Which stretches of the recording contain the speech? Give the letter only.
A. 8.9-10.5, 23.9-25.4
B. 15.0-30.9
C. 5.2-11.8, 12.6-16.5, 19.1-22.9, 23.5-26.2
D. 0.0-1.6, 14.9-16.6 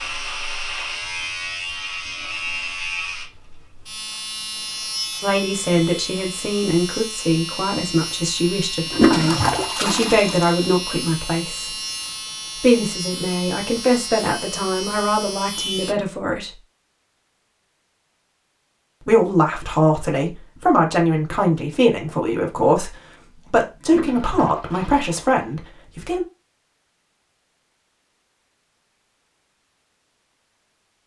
C.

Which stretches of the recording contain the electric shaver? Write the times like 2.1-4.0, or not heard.
0.0-15.9.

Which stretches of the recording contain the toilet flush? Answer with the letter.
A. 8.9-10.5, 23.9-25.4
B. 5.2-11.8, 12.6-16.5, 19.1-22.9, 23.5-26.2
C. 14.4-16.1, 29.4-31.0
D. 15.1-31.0
A.